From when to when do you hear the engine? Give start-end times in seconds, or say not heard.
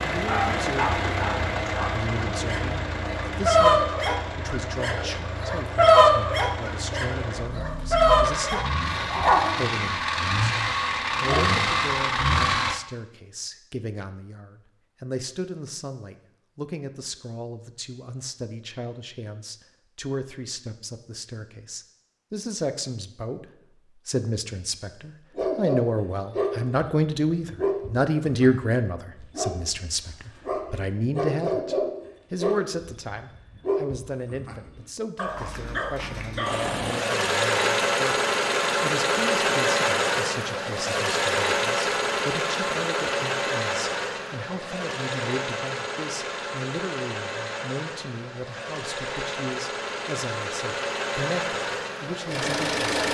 0.0-12.8, 36.5-53.0.